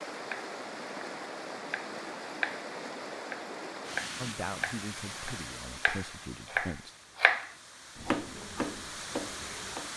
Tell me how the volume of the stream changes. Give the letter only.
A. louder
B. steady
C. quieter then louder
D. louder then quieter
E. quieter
C.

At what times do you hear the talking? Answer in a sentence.
You can hear the talking from 4.2 to 7.0 s.